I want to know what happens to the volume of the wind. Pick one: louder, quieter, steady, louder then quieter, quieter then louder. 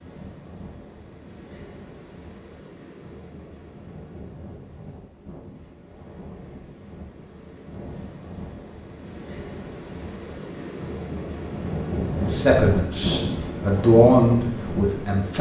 louder.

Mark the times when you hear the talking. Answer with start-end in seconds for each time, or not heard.
12.2-15.3.